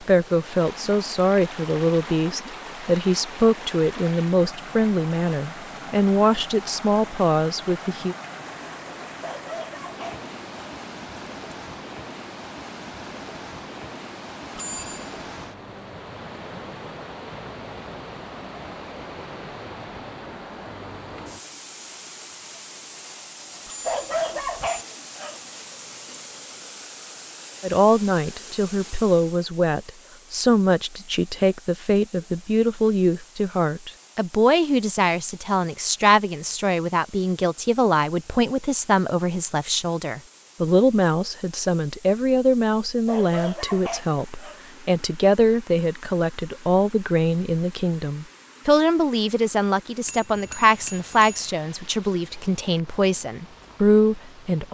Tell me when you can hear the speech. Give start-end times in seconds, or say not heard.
0.1-8.2, 27.6-54.6.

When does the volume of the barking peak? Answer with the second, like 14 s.
24 s.